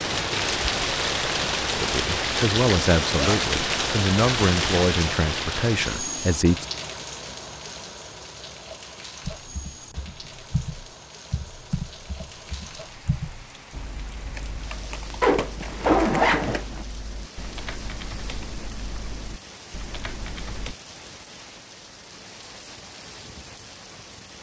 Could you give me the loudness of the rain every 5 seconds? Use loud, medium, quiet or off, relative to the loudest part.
loud, medium, quiet, quiet, quiet.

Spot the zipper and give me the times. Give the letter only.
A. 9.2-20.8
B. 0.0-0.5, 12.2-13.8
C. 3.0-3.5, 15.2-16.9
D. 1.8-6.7
C.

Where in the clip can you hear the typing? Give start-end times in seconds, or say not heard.
9.2-20.8.